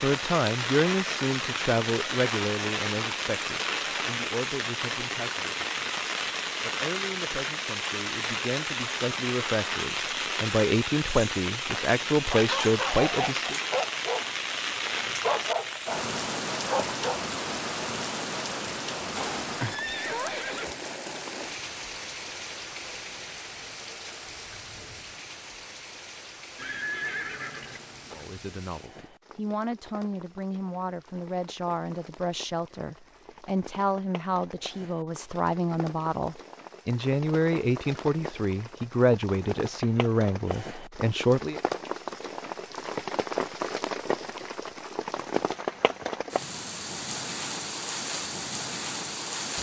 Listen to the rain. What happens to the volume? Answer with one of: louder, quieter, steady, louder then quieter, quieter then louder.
quieter then louder.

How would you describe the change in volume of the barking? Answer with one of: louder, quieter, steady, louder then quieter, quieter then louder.
quieter then louder.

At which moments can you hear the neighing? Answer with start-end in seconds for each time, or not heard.
19.1-20.8, 26.6-28.2.